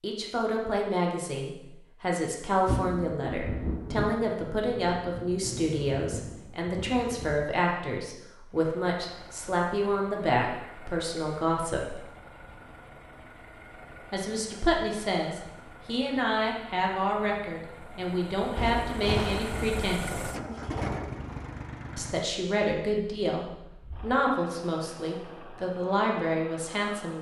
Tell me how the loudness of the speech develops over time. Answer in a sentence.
The loudness of the speech stays about the same.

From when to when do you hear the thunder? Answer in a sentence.
You can hear the thunder from 2.5 to 7.5 s and from 18.6 to 20.4 s.